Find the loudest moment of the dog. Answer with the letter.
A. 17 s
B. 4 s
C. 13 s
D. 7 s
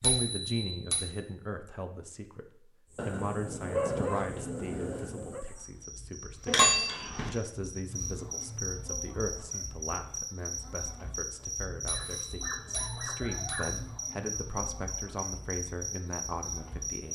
B.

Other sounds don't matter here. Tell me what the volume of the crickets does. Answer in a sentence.
The volume of the crickets goes up.